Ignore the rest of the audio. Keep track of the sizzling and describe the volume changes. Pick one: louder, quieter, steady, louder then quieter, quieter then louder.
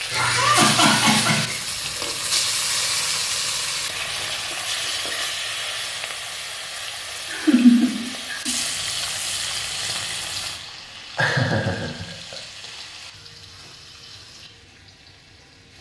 quieter.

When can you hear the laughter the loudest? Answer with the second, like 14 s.
8 s.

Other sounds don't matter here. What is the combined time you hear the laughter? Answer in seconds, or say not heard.
4 s.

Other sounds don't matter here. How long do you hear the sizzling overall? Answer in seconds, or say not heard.
16 s.